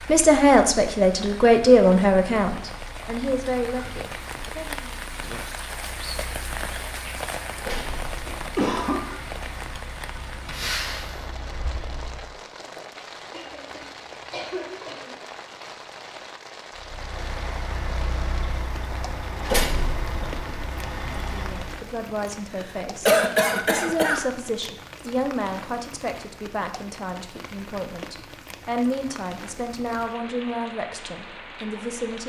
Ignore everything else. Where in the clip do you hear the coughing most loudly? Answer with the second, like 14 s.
23 s.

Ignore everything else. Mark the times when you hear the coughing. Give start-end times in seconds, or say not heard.
8.2-9.1, 13.3-15.2, 22.6-24.2.